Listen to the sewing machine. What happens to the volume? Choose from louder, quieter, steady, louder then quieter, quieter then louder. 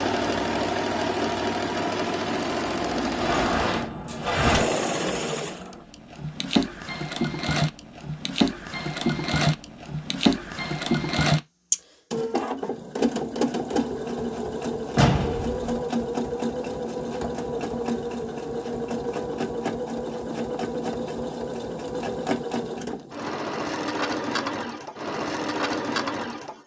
steady.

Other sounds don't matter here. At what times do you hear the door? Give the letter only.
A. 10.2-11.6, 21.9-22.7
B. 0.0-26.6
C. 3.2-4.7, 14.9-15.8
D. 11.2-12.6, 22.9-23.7
C.